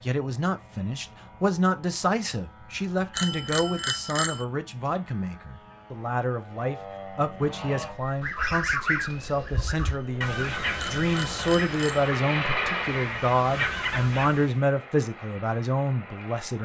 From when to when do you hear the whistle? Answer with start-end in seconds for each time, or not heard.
not heard.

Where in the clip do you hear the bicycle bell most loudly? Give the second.
4 s.